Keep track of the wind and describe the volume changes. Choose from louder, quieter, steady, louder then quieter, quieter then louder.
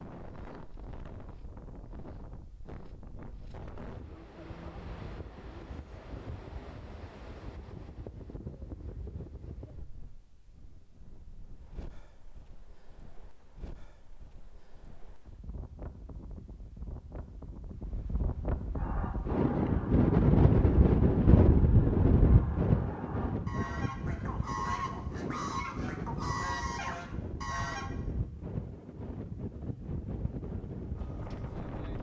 louder then quieter.